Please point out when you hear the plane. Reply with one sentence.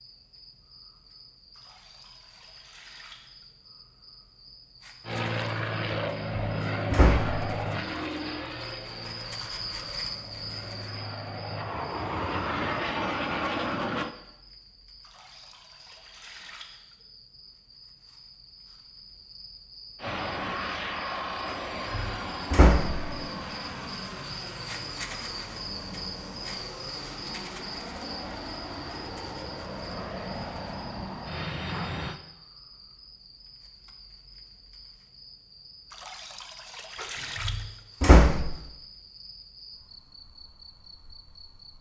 The plane can be heard from 5.0 to 14.2 s and from 19.9 to 32.2 s.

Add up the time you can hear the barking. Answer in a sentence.
You can't hear the barking here.